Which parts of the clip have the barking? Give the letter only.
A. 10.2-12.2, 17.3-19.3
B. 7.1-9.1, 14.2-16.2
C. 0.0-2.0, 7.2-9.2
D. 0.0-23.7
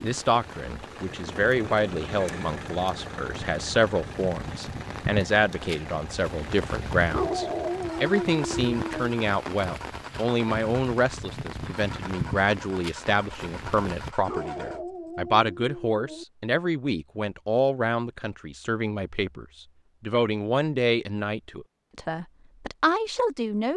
B.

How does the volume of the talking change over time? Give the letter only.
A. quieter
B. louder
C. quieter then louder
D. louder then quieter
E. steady
E.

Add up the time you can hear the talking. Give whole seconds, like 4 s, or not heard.
24 s.